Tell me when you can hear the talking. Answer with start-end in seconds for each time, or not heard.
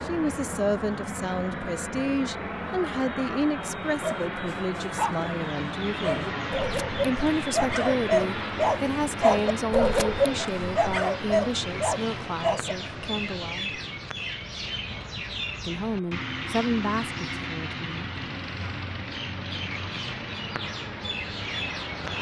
0.0-6.2, 7.0-13.8, 15.6-18.1.